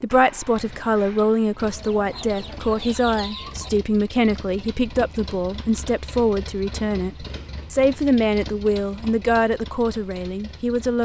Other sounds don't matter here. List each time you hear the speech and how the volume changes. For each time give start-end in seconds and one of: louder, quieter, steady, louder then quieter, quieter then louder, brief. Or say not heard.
0.0-10.9 steady.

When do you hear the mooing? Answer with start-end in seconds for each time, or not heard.
not heard.